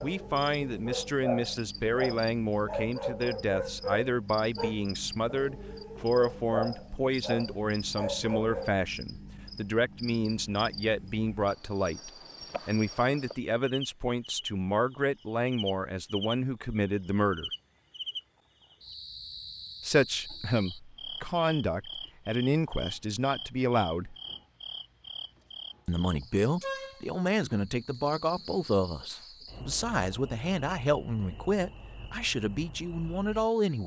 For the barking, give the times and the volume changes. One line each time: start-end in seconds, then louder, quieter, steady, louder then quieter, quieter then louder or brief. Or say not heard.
0.0-8.7 steady.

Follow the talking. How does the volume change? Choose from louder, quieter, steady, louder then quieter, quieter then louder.
steady.